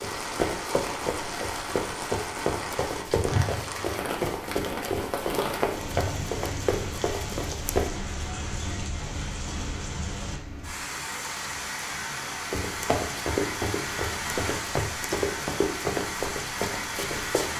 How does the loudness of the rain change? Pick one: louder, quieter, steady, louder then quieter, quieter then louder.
steady.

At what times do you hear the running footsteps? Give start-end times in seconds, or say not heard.
0.0-7.9, 12.5-17.5.